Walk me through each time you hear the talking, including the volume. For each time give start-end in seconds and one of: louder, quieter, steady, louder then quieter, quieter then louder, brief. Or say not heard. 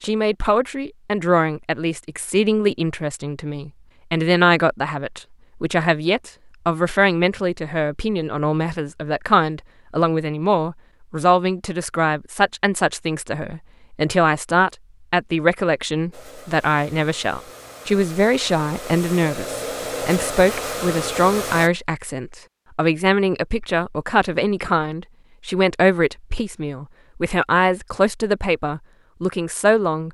0.0-30.0 steady.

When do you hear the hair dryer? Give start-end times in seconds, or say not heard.
16.1-21.7.